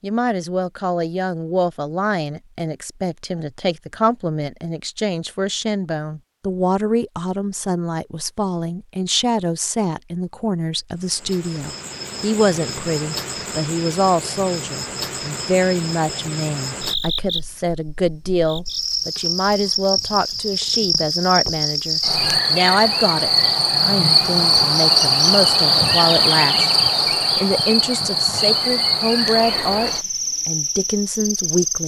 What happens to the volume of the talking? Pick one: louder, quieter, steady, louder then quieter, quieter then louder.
steady.